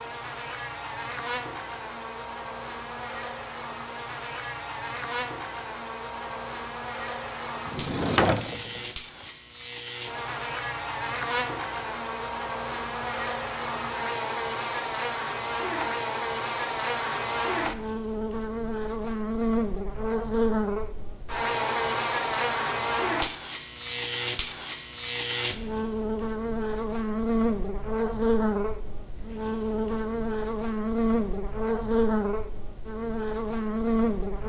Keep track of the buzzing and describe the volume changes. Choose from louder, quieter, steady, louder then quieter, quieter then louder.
louder.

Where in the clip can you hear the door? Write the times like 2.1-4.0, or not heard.
7.7-8.8.